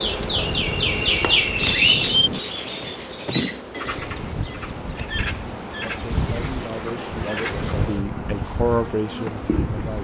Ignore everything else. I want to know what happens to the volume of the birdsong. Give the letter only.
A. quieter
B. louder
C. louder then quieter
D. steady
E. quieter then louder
A.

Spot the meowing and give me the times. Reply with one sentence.
You can't hear the meowing here.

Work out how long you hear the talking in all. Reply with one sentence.
You can hear the talking for 4 seconds altogether.